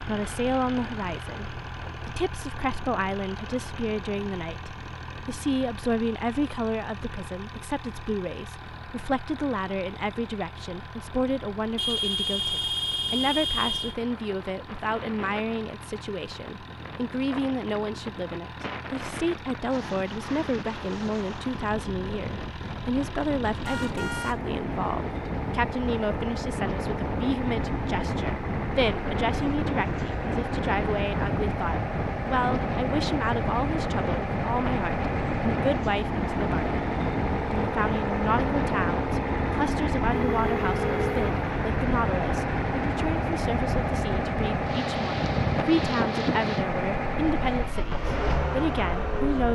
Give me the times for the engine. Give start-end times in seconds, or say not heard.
0.0-49.4.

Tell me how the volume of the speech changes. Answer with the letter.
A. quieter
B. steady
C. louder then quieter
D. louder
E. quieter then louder
B.